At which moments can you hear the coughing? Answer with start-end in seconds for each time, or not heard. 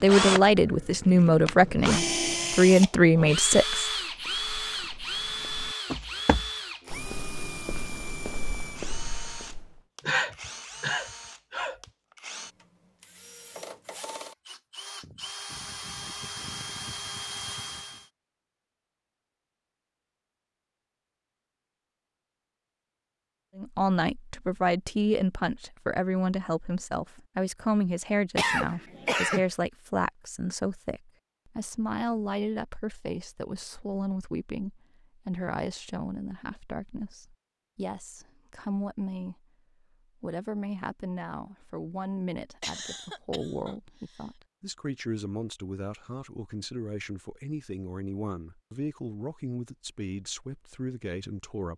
10.1-11.9, 28.4-29.5, 42.6-44.3.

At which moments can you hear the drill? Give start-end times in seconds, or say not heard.
0.0-18.1.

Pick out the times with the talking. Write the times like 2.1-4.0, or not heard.
0.0-3.9, 23.6-39.5, 40.2-51.7.